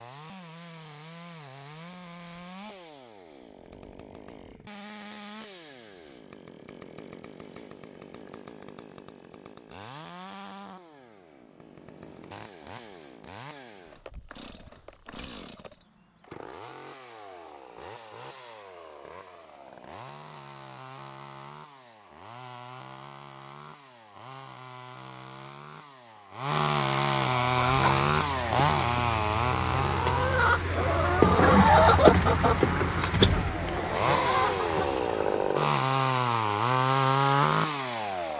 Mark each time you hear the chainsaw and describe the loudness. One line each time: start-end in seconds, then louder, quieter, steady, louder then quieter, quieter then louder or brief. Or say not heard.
0.0-38.3 louder.